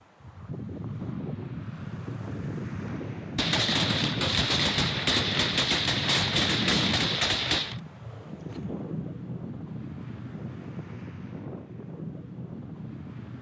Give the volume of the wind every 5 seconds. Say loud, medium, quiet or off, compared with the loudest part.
loud, loud, medium.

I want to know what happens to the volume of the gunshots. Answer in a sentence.
The loudness of the gunshots stays about the same.